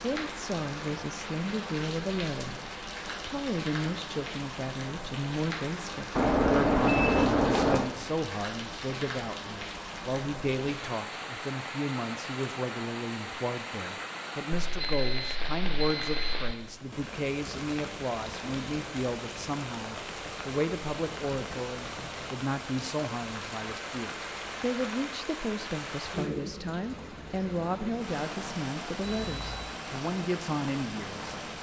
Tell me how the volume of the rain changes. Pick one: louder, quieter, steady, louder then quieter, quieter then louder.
steady.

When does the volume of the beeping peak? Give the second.
7 s.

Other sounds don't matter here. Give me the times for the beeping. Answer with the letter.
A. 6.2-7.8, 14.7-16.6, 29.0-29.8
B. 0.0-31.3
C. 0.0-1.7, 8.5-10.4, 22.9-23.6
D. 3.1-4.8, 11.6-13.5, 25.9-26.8
A.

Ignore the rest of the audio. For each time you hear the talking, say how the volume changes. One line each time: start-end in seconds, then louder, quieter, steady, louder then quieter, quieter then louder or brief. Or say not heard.
0.0-31.3 steady.